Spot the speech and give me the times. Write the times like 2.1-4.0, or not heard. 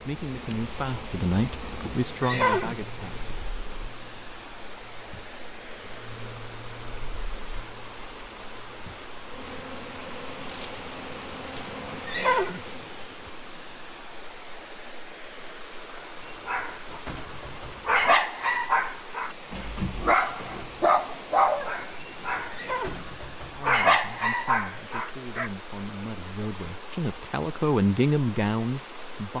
0.0-3.2, 23.5-29.3.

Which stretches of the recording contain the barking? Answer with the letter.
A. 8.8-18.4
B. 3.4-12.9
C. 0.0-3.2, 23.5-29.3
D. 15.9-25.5
D.